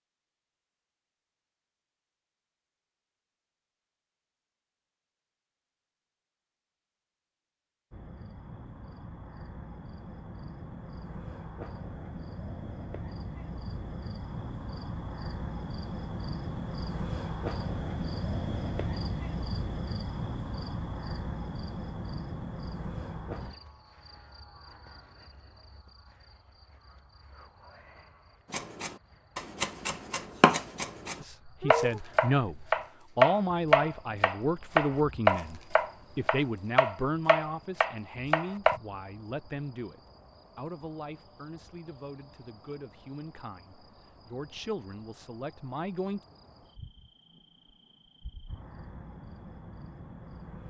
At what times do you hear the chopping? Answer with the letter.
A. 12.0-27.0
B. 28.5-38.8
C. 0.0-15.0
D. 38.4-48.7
B.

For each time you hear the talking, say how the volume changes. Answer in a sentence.
You can hear the talking from 31.2 to 46.2 s, getting quieter.